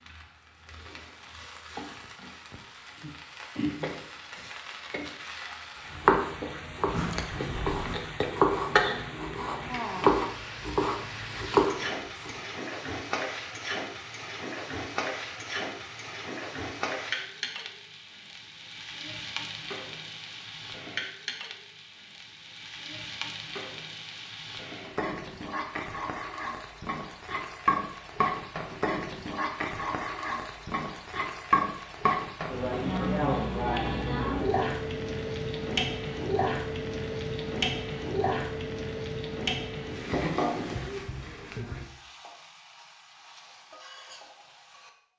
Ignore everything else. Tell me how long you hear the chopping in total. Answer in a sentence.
The chopping can be heard for 6 seconds in total.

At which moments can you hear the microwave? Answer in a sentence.
The microwave can't be heard in this clip.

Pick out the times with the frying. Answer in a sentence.
The frying can be heard from 0.0 to 44.9 s.